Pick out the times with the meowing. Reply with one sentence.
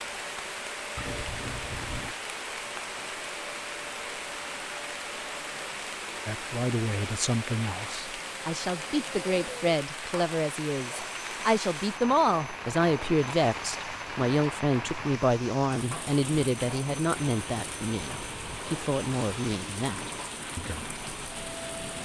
The meowing can be heard from 0.9 to 2.1 s.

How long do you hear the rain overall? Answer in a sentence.
The rain can be heard for 22 seconds in total.